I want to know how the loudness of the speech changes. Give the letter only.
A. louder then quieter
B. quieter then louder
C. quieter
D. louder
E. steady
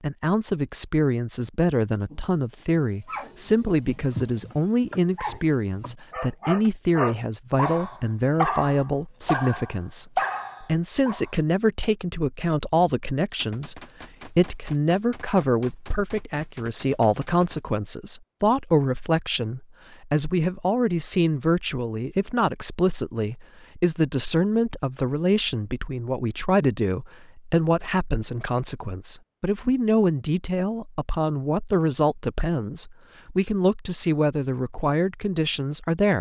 E.